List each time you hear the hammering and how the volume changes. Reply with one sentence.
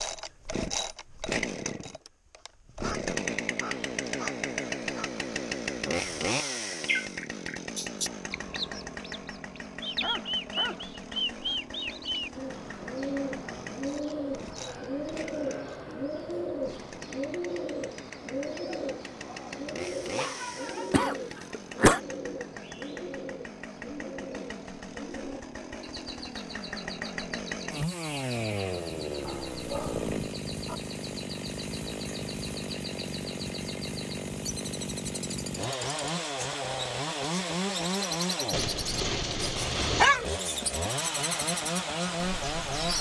You can't hear the hammering here.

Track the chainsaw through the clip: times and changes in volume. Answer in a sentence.
The chainsaw can be heard from 0.0 to 42.9 s, getting quieter then louder.